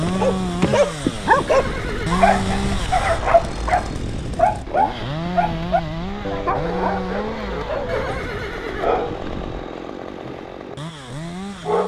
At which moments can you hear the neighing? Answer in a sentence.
The neighing can be heard from 1.4 to 2.2 s and from 7.8 to 8.9 s.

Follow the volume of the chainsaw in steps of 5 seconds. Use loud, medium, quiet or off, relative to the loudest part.
loud, loud, medium.